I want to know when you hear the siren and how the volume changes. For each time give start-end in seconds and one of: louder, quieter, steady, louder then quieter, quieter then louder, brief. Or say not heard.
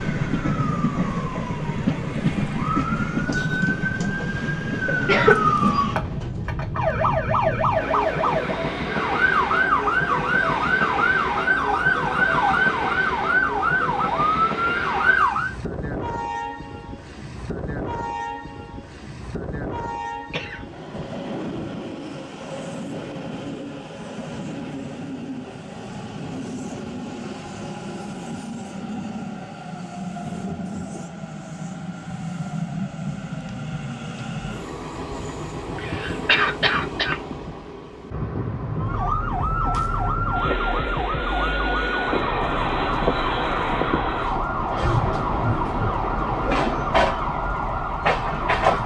0.1-15.6 louder
38.8-48.8 steady.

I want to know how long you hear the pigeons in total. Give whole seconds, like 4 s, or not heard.
not heard.